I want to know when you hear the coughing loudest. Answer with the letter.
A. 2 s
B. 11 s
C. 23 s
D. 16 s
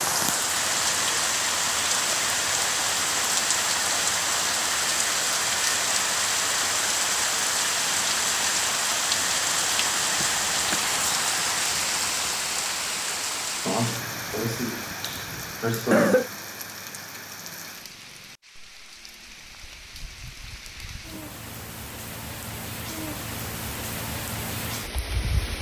D.